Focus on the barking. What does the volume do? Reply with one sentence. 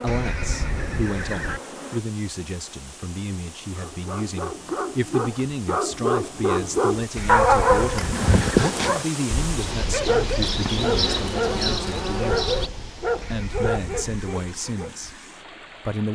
The volume of the barking goes up, then down.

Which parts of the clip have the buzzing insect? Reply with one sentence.
The buzzing insect can be heard from 0.0 to 2.0 s and from 9.4 to 12.7 s.